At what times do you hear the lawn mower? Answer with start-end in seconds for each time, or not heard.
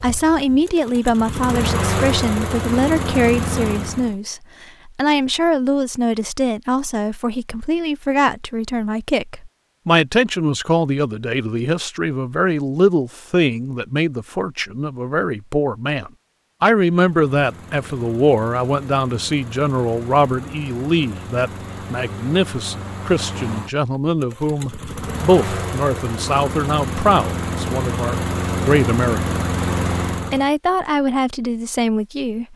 0.0-4.2, 16.9-30.5.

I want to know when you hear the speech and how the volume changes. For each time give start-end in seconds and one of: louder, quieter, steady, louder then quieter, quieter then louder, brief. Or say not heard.
0.0-29.2 steady
30.3-32.5 brief.